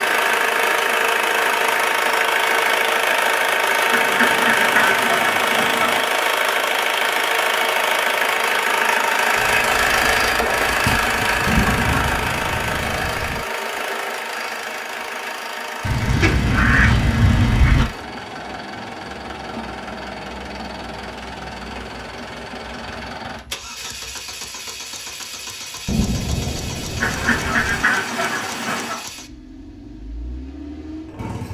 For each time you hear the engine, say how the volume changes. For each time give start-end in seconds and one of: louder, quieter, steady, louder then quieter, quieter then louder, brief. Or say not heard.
0.0-31.4 quieter.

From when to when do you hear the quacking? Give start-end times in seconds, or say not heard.
3.9-6.1, 9.3-12.1, 15.8-17.9, 27.0-29.0.